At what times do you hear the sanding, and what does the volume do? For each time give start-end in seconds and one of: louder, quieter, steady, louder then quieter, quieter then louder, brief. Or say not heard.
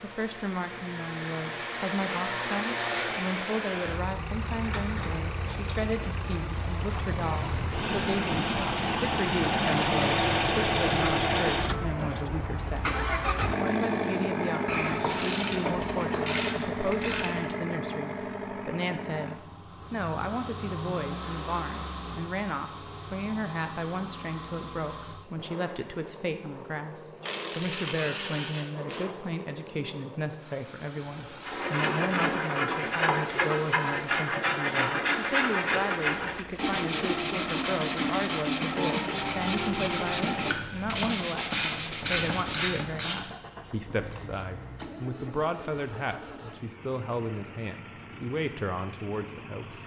31.4-42.8 steady.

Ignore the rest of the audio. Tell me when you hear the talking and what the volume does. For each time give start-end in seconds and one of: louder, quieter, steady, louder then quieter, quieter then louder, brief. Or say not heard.
0.0-49.8 steady.